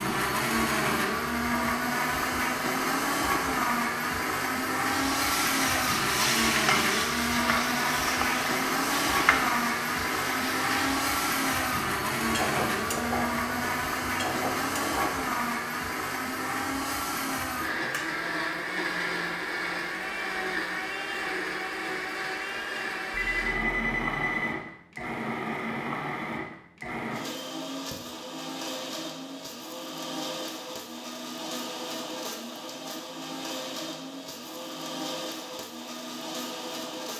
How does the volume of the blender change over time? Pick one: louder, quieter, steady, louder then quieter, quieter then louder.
quieter.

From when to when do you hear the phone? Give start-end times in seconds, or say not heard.
23.1-24.5.